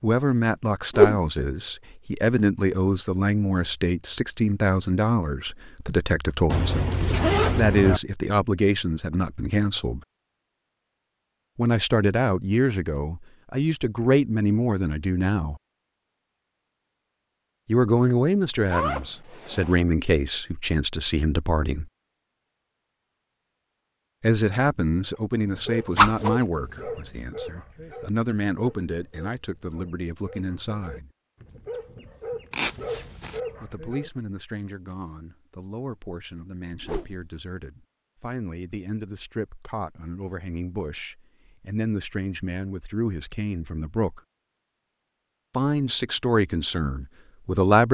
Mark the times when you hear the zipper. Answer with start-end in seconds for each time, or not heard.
6.5-8.0, 18.6-19.9, 32.5-33.4.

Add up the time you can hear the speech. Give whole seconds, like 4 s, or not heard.
38 s.